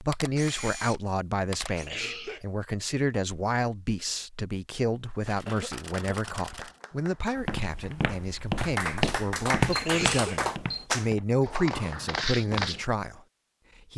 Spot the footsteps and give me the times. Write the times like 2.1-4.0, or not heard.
7.3-12.8.